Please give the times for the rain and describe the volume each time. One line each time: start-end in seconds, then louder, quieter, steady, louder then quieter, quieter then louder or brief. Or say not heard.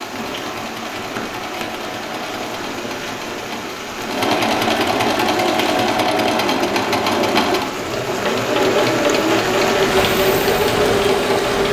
0.0-11.6 louder.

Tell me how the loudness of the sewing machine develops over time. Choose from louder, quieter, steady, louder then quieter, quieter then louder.
louder.